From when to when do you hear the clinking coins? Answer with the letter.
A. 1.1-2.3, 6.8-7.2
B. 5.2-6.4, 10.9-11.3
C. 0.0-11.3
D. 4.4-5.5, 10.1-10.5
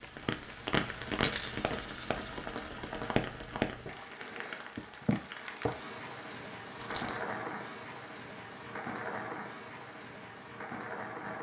A.